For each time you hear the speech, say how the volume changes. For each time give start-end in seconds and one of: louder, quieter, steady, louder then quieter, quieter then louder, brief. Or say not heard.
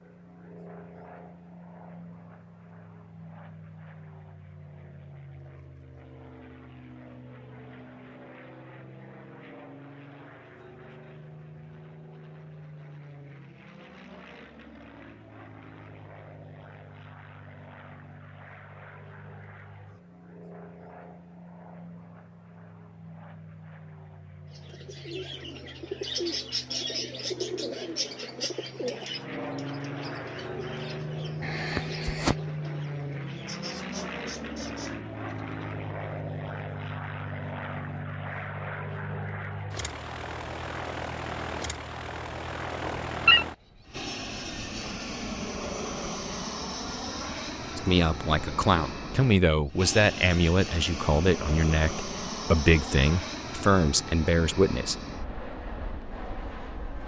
47.8-55.0 steady.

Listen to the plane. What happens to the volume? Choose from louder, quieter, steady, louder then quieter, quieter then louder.
louder.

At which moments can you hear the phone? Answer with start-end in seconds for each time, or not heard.
42.9-43.5.